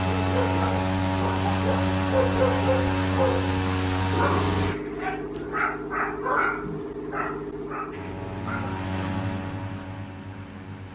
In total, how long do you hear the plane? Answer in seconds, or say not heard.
8 s.